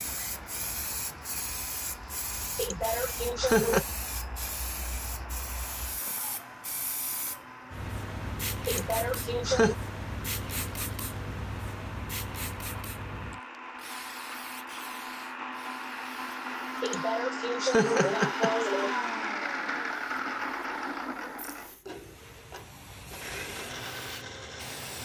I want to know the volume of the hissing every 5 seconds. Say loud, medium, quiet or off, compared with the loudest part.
loud, loud, loud, medium, medium.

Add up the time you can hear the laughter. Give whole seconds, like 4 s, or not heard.
5 s.